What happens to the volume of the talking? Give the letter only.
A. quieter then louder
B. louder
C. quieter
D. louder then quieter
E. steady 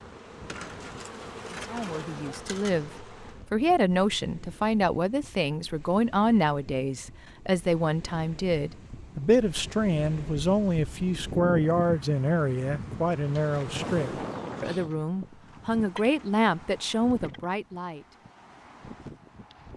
E.